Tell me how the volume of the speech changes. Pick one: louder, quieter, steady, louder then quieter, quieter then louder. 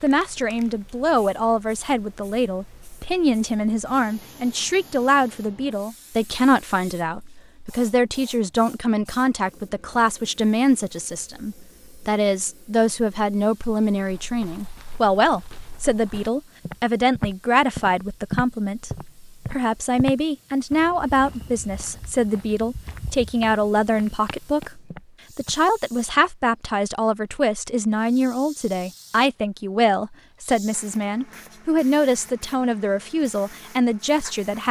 steady.